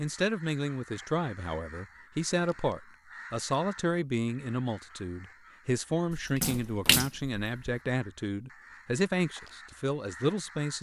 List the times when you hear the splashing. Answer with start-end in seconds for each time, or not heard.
6.1-7.5.